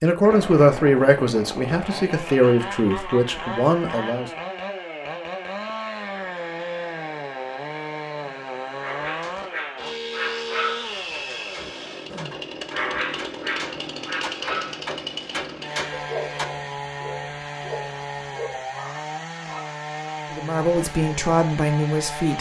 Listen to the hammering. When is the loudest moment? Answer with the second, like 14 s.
16 s.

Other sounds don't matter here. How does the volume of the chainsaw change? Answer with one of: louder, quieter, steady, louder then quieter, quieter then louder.
steady.